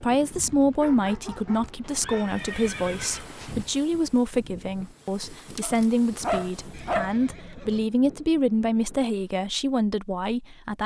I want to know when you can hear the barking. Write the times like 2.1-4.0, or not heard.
0.3-2.4, 5.6-7.2.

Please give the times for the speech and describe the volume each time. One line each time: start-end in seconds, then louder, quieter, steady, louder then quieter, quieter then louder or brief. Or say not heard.
0.0-10.8 steady.